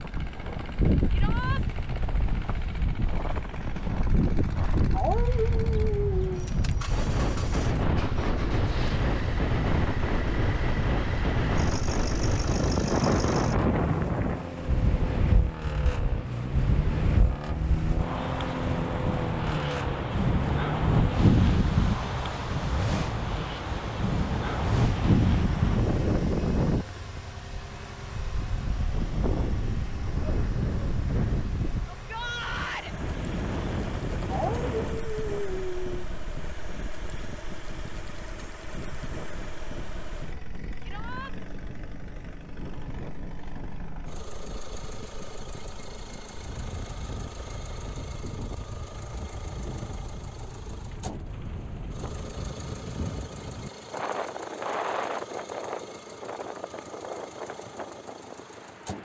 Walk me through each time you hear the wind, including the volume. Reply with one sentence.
The wind can be heard from 0.0 to 59.0 s, getting quieter then louder.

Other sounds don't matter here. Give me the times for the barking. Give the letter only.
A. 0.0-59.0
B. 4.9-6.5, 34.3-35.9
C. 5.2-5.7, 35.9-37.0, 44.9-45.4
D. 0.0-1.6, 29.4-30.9
B.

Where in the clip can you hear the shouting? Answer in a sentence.
The shouting can be heard from 1.1 to 1.6 s, from 31.9 to 33.0 s and from 40.9 to 41.3 s.